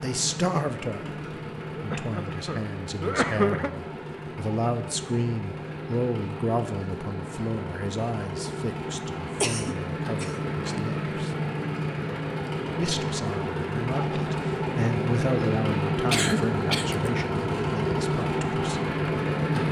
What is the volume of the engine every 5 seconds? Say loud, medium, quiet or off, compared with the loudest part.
medium, medium, loud, loud.